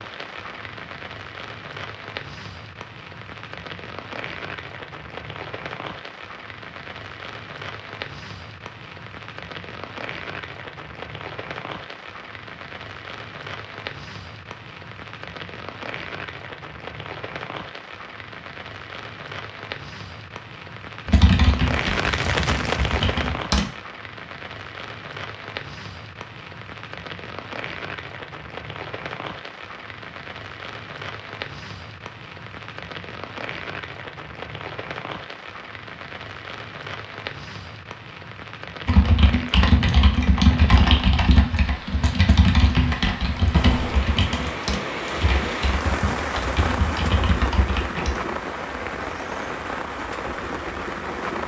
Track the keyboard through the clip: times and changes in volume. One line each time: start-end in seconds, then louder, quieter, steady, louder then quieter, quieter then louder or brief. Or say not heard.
21.1-23.7 brief
38.9-48.2 quieter.